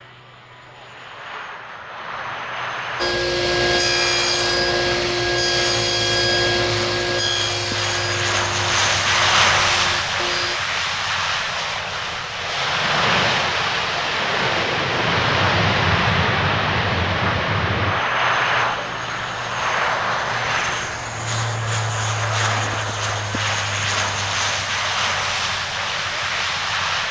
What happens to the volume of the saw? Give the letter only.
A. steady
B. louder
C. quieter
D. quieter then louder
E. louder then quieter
C.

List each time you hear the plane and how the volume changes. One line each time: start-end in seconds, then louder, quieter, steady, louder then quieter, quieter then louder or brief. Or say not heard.
0.0-27.0 louder.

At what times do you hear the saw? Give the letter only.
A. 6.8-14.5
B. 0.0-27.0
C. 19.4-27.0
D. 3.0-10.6
D.